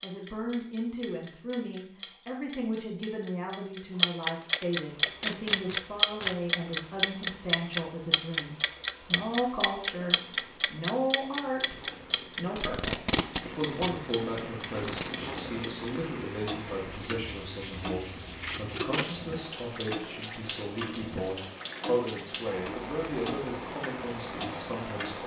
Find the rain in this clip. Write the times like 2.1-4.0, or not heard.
4.9-25.2.